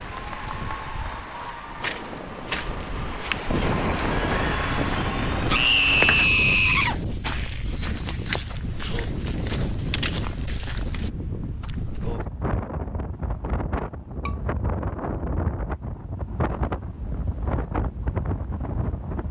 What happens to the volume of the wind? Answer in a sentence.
The volume of the wind stays about the same.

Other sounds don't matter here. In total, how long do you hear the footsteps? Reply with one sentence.
The footsteps can be heard for 9 seconds in total.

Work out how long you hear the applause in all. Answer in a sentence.
The applause can be heard for 6 seconds in total.